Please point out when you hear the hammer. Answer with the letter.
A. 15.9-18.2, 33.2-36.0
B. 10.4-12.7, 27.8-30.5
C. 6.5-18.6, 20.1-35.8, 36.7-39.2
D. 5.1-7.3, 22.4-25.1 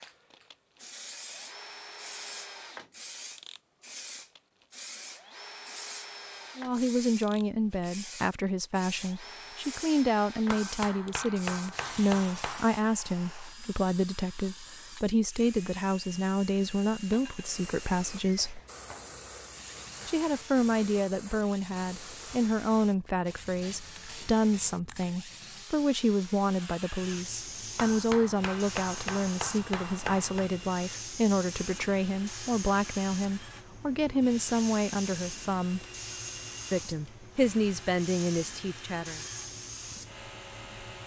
B.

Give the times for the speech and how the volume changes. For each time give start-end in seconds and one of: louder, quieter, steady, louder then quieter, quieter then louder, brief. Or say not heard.
6.5-18.6 steady
20.1-35.8 steady
36.7-39.2 brief.